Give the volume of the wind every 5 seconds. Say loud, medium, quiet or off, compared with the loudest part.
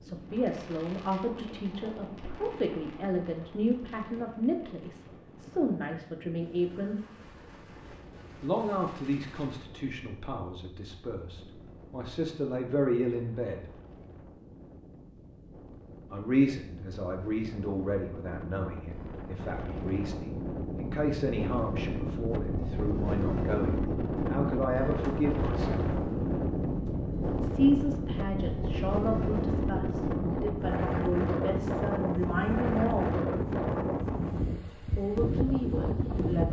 quiet, quiet, quiet, quiet, loud, loud, loud, loud.